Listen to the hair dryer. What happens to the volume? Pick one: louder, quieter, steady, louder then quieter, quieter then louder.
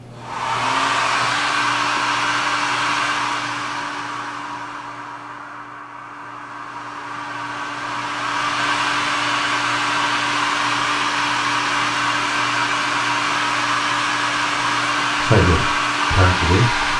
quieter then louder.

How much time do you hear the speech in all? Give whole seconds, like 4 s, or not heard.
2 s.